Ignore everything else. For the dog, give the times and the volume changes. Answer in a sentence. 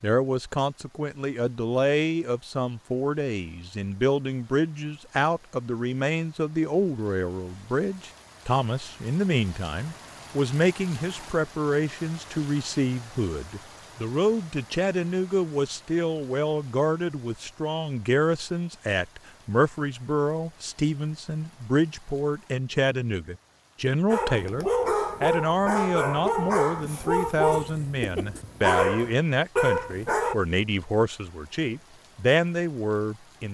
The dog can be heard from 24.1 to 30.4 s, at a steady volume.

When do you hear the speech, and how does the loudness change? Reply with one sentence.
The speech can be heard from 0.0 to 33.5 s, at a steady volume.